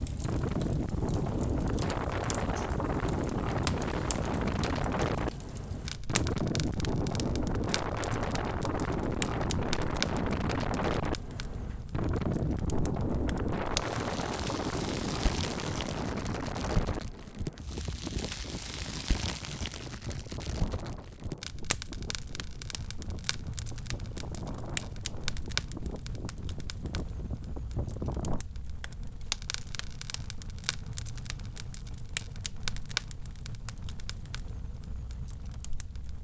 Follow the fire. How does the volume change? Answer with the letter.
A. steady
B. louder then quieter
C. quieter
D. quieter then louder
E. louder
A.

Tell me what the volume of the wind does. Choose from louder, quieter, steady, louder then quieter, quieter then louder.
quieter.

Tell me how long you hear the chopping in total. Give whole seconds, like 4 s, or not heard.
not heard.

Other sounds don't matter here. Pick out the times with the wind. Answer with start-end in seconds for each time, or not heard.
0.2-28.4.